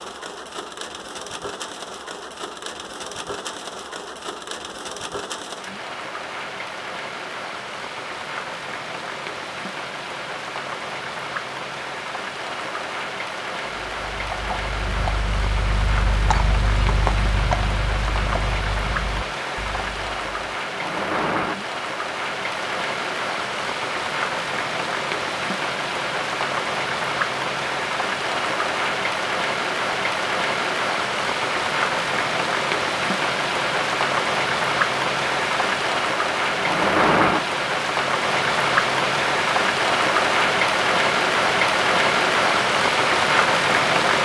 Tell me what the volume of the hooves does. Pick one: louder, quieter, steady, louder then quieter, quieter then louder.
louder then quieter.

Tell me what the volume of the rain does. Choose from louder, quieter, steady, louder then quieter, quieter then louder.
louder.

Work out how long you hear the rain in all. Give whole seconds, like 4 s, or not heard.
44 s.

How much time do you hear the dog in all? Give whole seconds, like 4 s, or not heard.
not heard.